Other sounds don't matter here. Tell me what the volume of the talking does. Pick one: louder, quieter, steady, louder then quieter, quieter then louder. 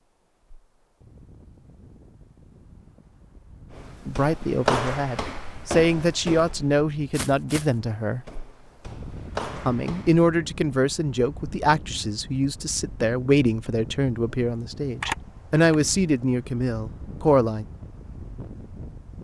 steady.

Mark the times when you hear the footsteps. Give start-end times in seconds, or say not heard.
3.7-10.2.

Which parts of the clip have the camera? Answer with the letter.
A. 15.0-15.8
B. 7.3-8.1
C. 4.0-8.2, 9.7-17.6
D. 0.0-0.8
A.